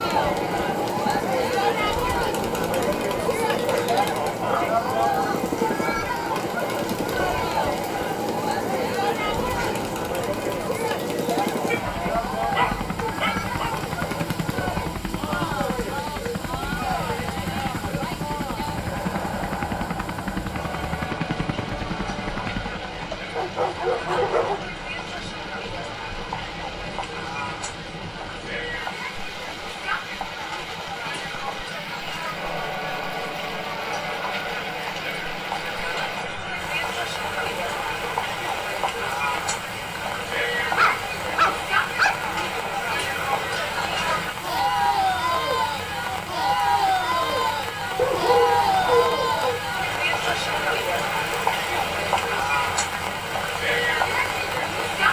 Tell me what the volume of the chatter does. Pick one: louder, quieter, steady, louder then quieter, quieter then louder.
quieter then louder.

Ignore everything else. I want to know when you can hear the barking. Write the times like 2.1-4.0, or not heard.
3.6-4.8, 11.7-13.8, 23.1-24.7, 40.8-42.2, 48.0-49.6.